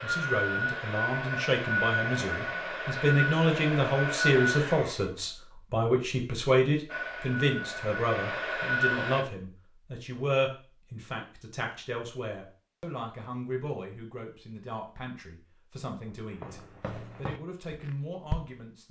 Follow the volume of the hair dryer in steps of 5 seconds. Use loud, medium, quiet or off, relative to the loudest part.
loud, loud, off, off.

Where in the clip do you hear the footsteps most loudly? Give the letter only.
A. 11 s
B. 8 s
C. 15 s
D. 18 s
D.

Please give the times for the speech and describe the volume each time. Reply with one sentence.
You can hear the speech from 0.0 to 18.8 s, getting quieter.